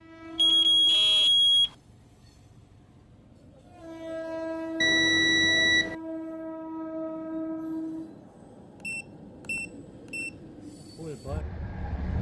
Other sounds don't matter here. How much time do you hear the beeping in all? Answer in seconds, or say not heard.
4 s.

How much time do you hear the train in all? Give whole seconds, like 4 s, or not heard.
12 s.